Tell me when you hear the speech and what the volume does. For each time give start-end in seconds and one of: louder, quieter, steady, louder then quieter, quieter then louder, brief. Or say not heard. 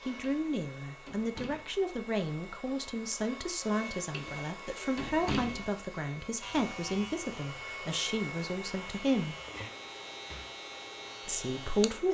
0.1-9.3 steady
11.2-12.0 brief.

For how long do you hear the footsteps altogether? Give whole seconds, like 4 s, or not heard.
not heard.